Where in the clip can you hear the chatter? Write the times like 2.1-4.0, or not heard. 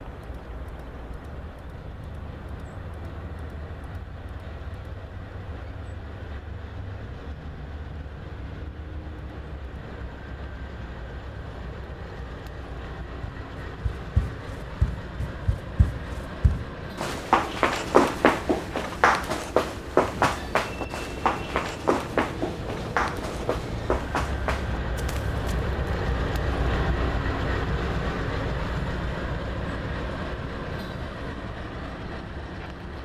not heard.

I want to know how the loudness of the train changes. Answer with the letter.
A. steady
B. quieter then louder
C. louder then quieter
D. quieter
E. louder
E.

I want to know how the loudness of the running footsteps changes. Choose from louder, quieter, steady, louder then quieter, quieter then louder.
louder then quieter.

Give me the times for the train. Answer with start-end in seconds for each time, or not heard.
0.0-32.9.